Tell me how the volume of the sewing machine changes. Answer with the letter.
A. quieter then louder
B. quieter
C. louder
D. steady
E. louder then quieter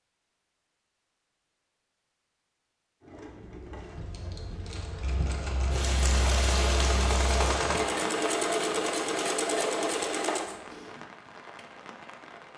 C.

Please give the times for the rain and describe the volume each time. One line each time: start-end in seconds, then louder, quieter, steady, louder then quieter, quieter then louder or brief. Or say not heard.
4.0-12.5 louder then quieter.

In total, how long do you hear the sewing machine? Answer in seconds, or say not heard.
8 s.